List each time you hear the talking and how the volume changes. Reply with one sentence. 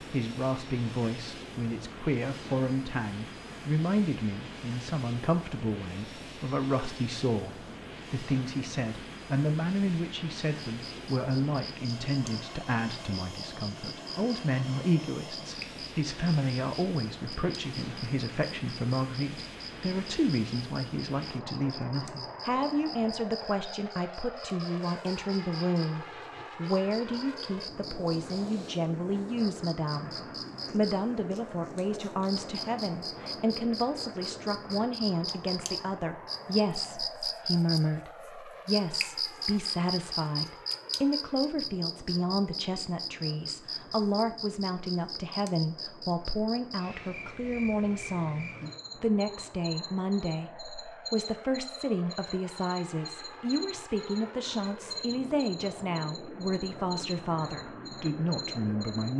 You can hear the talking from 0.0 to 59.1 s, at a steady volume.